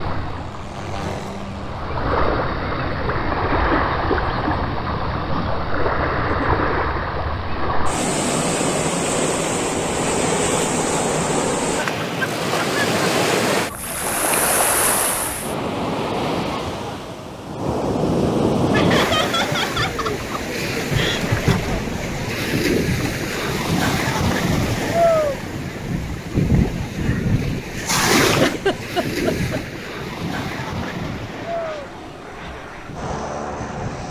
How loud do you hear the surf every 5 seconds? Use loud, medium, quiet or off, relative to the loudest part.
loud, loud, loud, loud, loud, loud, medium.